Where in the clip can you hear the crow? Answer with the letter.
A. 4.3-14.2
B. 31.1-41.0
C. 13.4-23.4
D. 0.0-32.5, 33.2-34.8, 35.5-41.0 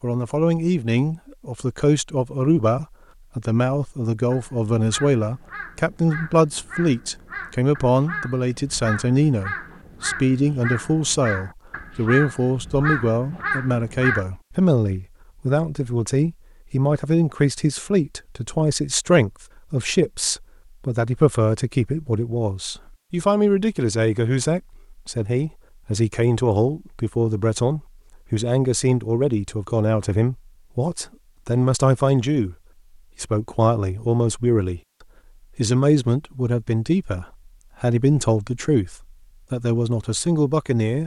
A.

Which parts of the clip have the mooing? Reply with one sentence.
The mooing can't be heard in this clip.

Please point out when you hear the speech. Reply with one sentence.
You can hear the speech from 0.0 to 32.5 s, from 33.2 to 34.8 s and from 35.5 to 41.0 s.